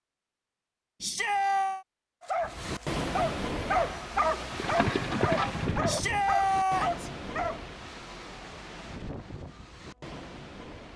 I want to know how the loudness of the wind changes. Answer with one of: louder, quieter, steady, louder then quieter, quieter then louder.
quieter.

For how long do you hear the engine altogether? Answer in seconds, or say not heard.
2 s.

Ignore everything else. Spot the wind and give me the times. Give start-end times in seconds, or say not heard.
2.4-10.9.